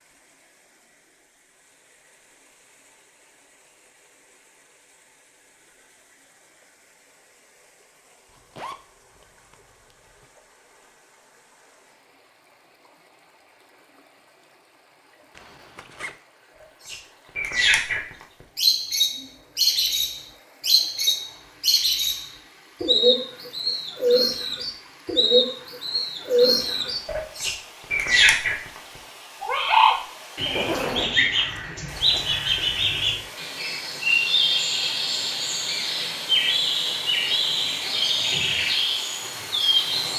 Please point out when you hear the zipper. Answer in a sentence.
You can hear the zipper from 8.3 to 10.2 s, from 15.3 to 16.1 s and from 30.4 to 32.4 s.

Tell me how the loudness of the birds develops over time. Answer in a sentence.
The loudness of the birds stays about the same.